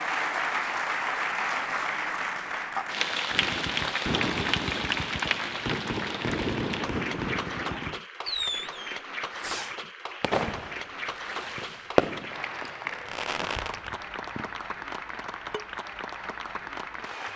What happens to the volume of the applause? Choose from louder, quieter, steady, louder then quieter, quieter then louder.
quieter.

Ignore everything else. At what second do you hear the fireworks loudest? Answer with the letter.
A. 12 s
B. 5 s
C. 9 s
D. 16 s
A.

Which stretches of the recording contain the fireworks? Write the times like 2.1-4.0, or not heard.
3.3-14.6.